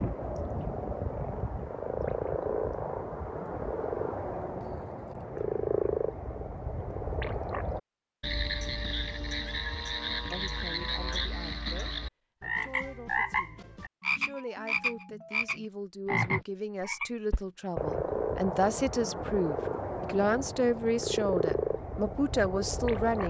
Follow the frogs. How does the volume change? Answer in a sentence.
The loudness of the frogs stays about the same.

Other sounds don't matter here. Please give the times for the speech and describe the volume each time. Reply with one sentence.
You can hear the speech from 10.3 to 23.2 s, getting louder.